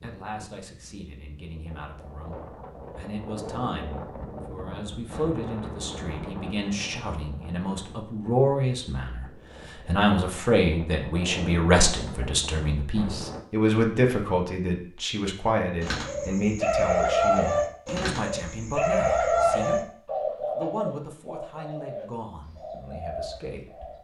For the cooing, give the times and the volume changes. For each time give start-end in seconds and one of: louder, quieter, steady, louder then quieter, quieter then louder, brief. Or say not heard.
15.8-24.0 quieter.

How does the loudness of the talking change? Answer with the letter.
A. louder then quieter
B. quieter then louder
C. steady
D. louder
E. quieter
A.